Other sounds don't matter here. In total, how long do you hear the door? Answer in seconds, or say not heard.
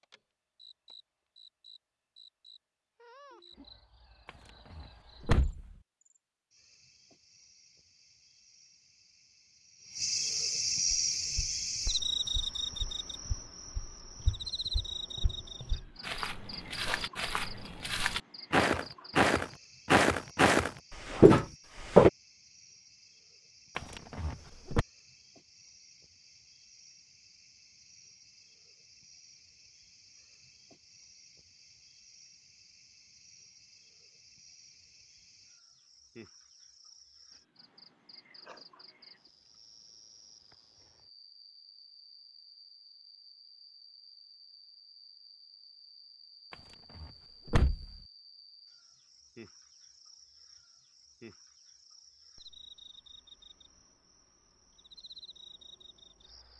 4 s.